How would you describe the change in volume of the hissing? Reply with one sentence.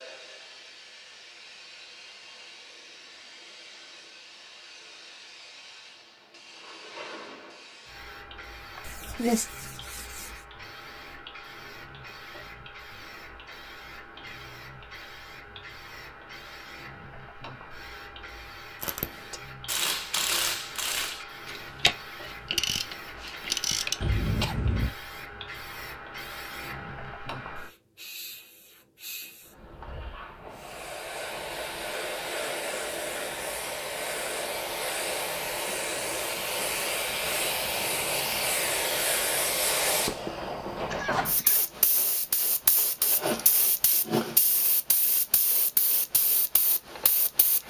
The volume of the hissing goes up.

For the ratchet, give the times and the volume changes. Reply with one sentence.
The ratchet can be heard from 18.8 to 24.2 s, at a steady volume.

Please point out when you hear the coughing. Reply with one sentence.
The coughing can be heard from 8.8 to 9.4 s, from 24.0 to 24.9 s and from 40.9 to 41.6 s.